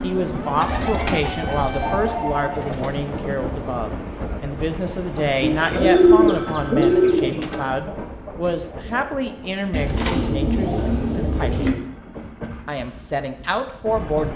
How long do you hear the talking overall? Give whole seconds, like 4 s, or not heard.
13 s.